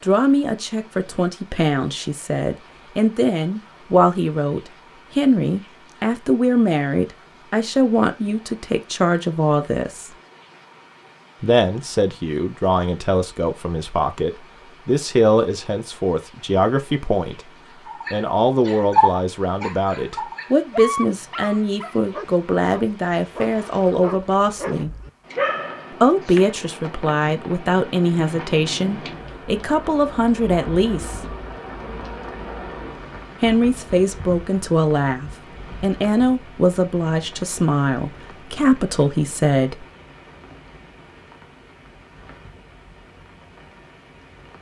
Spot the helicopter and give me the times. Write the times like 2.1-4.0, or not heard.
not heard.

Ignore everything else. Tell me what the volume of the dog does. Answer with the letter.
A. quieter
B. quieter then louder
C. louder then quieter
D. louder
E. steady
B.